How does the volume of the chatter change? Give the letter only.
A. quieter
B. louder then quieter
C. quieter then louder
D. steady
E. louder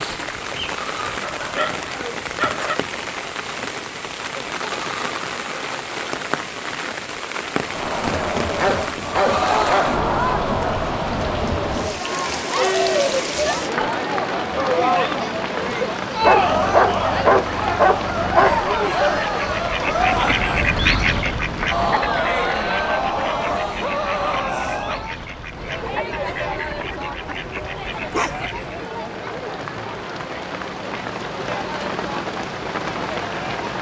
A.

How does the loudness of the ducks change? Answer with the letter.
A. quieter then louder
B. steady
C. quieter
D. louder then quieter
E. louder
C.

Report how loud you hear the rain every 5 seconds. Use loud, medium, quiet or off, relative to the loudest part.
loud, loud, loud, loud, loud, medium, loud.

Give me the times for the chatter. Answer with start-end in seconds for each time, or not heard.
7.7-33.7.